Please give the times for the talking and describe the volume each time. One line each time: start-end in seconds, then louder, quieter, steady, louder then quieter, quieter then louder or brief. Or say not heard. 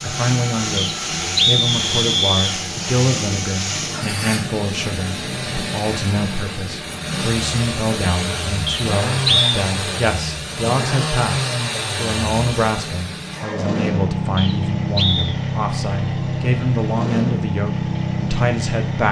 0.0-19.0 steady.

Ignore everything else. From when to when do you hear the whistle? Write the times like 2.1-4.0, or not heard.
0.8-2.5, 8.7-9.4, 14.3-15.3.